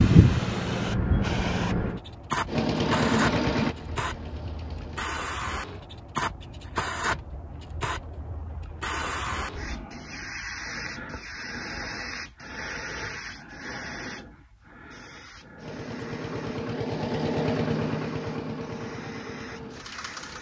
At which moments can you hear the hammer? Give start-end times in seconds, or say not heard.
not heard.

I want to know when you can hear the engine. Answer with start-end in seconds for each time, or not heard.
2.5-5.1, 15.6-20.3.